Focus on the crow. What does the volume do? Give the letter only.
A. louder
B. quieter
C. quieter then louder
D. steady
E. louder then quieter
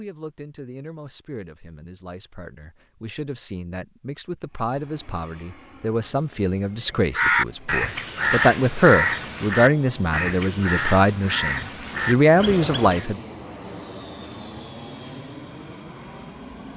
B.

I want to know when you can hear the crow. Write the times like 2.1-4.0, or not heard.
6.9-13.1.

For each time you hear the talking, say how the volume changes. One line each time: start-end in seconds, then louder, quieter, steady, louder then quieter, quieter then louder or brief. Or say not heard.
0.0-13.2 louder.